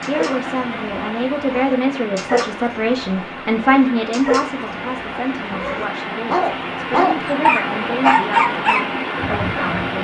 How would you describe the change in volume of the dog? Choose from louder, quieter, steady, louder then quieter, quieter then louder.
louder.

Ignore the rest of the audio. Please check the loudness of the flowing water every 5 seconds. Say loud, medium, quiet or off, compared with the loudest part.
medium, loud.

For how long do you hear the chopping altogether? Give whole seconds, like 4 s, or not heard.
not heard.